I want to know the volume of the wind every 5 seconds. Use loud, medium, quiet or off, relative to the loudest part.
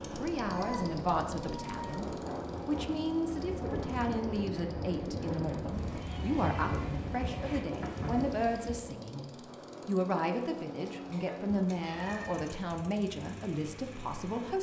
loud, loud, off.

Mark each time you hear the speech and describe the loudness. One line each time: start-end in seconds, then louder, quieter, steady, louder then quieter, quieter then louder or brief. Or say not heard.
0.1-14.5 steady.